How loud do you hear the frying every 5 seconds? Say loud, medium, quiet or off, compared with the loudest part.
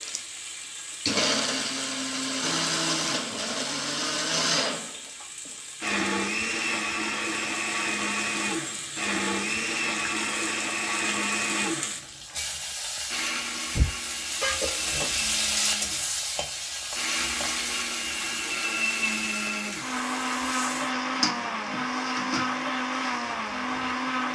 medium, medium, loud, loud, medium.